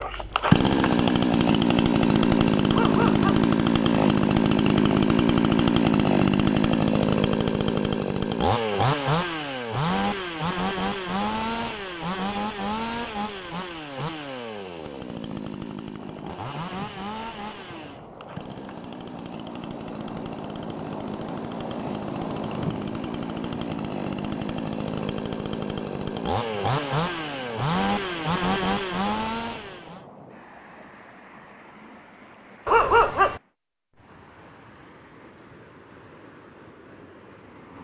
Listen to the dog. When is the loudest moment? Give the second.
33 s.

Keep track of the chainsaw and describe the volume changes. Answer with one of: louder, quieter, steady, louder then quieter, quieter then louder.
quieter then louder.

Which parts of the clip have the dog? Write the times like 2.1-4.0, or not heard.
2.7-3.5, 32.6-33.4.